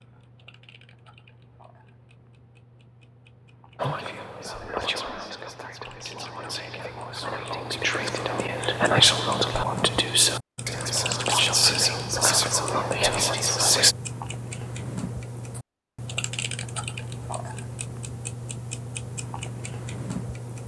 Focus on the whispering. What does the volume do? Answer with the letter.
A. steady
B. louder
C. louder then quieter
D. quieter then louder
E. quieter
B.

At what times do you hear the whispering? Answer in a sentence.
You can hear the whispering from 3.8 to 13.9 s.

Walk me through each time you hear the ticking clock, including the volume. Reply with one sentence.
The ticking clock can be heard from 0.0 to 20.6 s, getting louder.